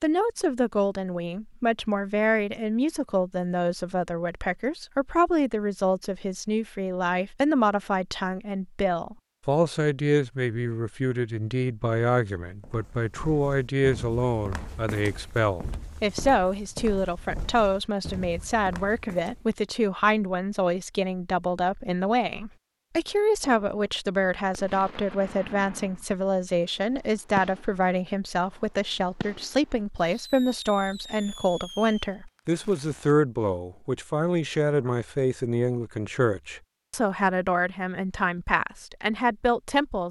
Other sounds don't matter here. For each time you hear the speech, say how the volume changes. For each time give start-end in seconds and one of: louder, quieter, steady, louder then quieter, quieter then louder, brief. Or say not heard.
0.0-40.0 steady.